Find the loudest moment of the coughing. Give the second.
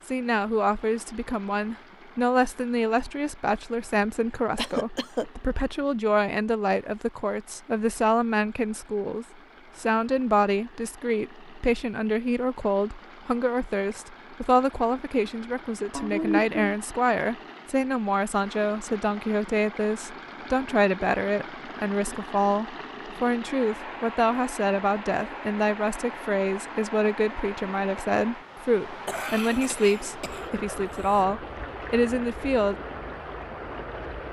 16 s.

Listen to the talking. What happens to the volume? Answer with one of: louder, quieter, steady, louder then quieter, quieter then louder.
steady.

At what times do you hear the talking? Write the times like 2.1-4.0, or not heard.
0.1-32.8.